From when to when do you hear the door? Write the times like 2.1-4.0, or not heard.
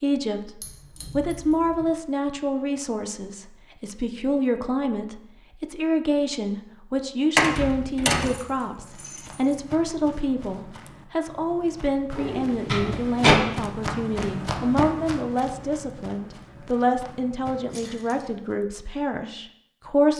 7.3-8.3, 12.2-13.4.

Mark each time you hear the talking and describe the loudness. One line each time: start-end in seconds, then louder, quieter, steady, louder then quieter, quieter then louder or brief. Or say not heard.
0.0-20.1 steady.